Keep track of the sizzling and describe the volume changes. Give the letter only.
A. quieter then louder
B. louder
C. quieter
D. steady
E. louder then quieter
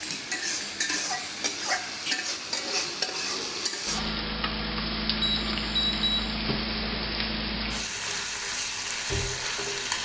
D.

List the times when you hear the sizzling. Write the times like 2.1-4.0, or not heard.
0.0-9.9.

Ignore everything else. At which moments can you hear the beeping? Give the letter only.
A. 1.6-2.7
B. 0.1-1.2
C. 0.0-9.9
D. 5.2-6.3
D.